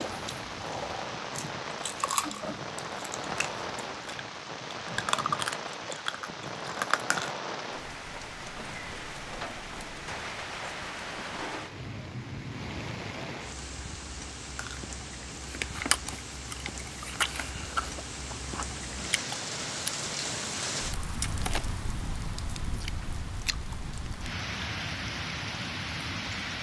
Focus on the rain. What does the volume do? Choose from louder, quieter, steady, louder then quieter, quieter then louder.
steady.